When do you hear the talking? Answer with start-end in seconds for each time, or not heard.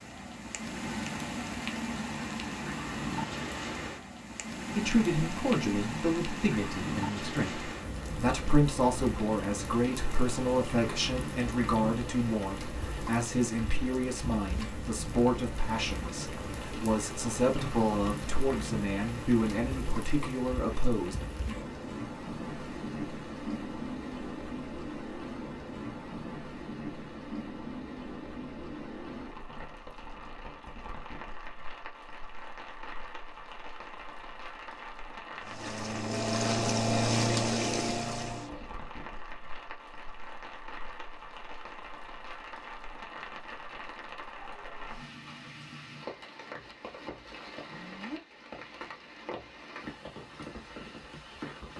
4.8-21.1.